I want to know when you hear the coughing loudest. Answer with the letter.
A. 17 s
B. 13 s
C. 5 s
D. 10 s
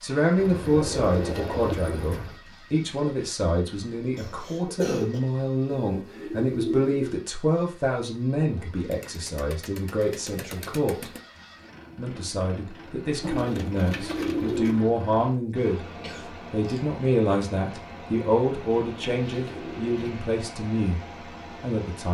C.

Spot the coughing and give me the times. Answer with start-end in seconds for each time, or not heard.
4.2-5.2, 16.0-17.0.